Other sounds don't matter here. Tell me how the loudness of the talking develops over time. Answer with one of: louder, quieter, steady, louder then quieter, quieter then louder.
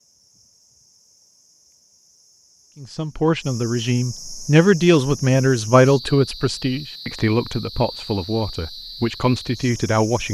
louder then quieter.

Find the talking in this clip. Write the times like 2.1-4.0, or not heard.
2.8-10.2.